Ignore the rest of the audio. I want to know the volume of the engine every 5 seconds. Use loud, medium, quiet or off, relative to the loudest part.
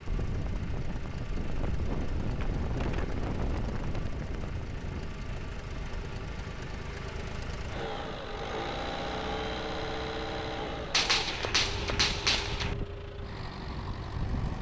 medium, loud, loud.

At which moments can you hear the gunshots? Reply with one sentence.
The gunshots can be heard from 10.9 to 12.8 s.